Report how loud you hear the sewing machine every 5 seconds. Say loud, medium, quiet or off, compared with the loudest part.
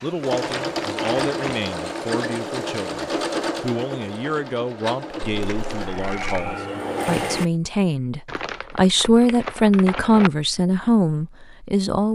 loud, loud, off.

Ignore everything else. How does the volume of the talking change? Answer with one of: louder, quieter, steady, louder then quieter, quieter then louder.
louder.